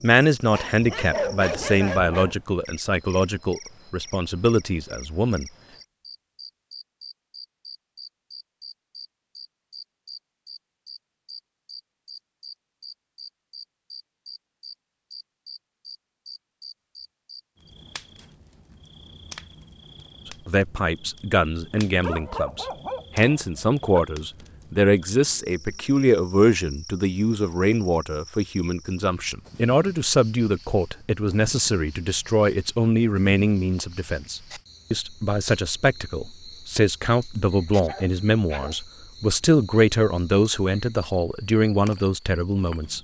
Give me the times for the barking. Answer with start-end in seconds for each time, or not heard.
0.5-2.4, 21.9-24.1, 37.6-38.8.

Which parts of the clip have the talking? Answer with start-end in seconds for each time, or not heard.
0.0-5.5, 20.2-42.9.